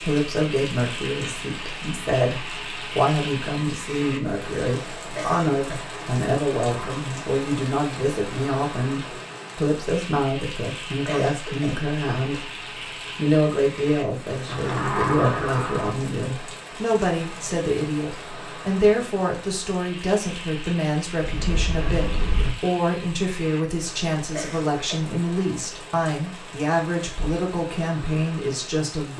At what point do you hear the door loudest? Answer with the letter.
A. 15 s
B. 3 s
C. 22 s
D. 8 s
A.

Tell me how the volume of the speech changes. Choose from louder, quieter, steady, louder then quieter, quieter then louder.
steady.